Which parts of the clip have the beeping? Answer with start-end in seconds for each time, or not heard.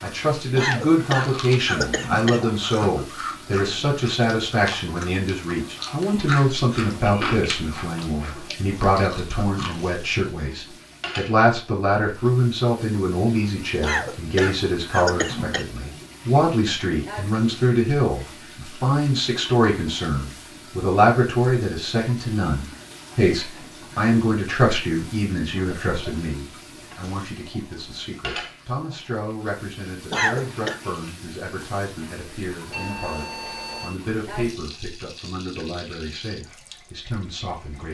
32.7-34.0.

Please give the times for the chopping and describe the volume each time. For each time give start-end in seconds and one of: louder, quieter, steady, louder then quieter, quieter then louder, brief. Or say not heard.
not heard.